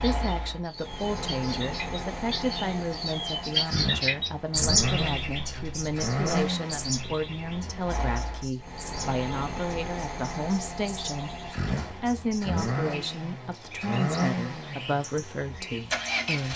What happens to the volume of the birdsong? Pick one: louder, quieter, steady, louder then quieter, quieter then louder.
louder then quieter.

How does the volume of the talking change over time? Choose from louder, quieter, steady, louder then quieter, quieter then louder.
steady.